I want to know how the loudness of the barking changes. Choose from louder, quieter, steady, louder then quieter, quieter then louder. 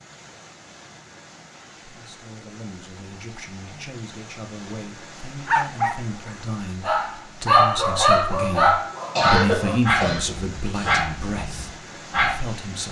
louder then quieter.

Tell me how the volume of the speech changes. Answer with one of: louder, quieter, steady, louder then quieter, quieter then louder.
louder then quieter.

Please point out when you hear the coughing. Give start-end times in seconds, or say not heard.
9.2-11.0.